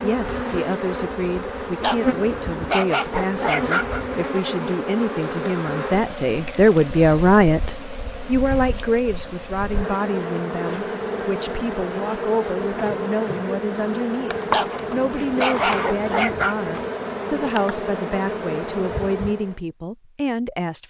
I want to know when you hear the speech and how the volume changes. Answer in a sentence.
You can hear the speech from 0.0 to 20.8 s, getting louder then quieter.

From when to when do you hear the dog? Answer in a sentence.
You can hear the dog from 1.8 to 4.0 s and from 14.5 to 16.6 s.